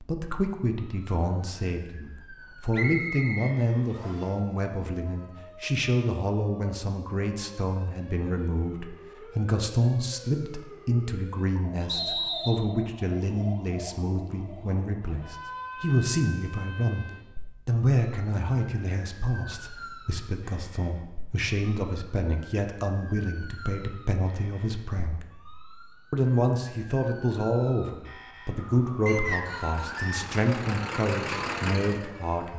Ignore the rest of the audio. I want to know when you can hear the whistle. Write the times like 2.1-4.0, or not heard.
2.7-4.3, 11.8-12.7, 29.1-30.2.